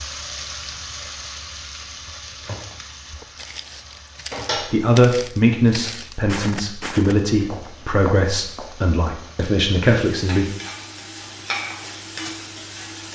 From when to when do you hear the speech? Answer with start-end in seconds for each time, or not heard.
4.7-10.4.